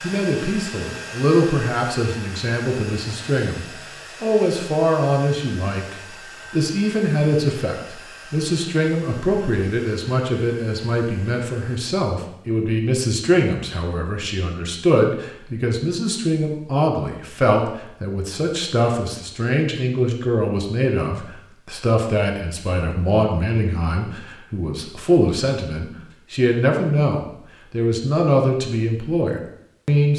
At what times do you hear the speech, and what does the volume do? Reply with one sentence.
You can hear the speech from 0.0 to 30.1 s, at a steady volume.